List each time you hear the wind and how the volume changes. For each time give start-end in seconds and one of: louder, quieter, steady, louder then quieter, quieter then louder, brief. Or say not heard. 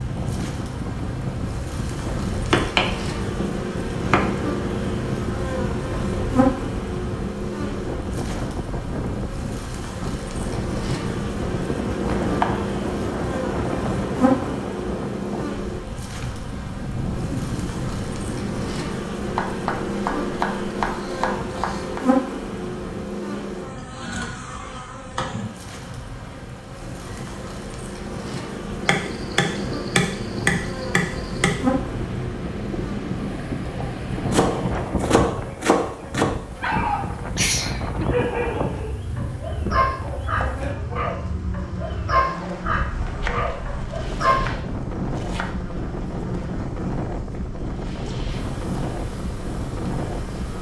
0.0-50.5 quieter then louder.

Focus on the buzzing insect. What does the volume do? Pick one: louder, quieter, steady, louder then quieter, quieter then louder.
quieter.